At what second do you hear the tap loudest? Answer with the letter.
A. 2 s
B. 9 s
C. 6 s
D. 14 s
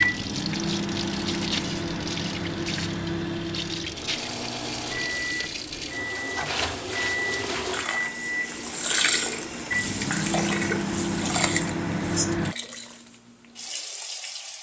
B.